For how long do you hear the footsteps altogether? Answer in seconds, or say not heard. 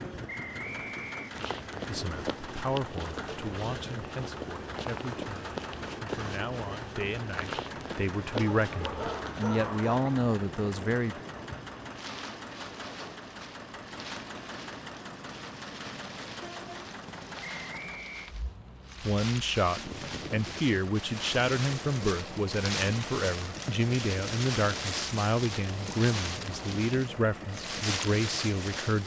8 s.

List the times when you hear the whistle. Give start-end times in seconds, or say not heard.
0.2-1.4, 17.4-18.4.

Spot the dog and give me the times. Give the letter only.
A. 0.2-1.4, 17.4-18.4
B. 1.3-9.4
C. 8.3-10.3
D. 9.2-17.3
C.